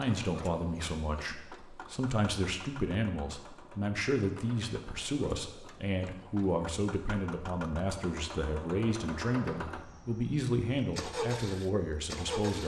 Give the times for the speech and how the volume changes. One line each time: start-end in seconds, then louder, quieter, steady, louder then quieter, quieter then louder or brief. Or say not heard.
0.0-12.6 steady.